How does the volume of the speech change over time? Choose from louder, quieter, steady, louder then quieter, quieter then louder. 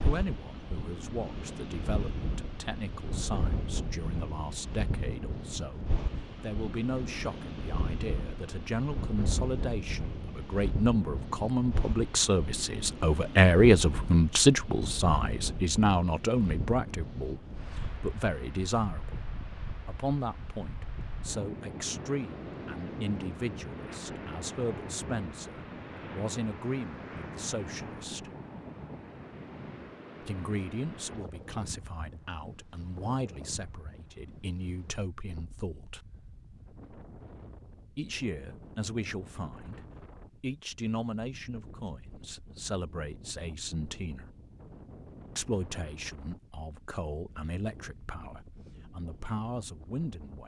louder then quieter.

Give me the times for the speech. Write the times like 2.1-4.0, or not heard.
0.0-19.2, 19.9-28.3, 30.2-36.0, 38.0-44.2, 45.4-50.4.